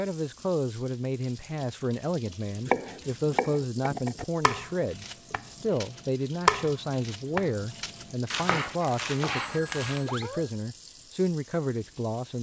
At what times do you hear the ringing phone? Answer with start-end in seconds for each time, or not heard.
9.4-10.5.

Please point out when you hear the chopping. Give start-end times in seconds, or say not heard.
2.5-10.2.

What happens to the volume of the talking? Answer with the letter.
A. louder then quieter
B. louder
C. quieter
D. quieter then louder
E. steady
E.